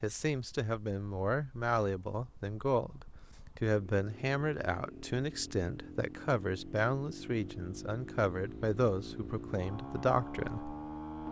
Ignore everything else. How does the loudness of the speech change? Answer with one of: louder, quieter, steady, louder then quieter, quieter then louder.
steady.